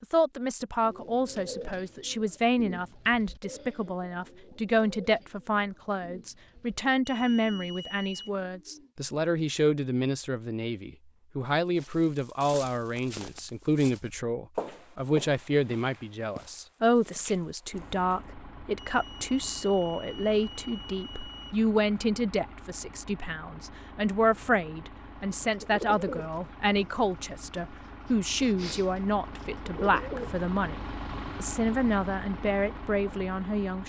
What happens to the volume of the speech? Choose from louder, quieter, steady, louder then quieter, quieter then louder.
steady.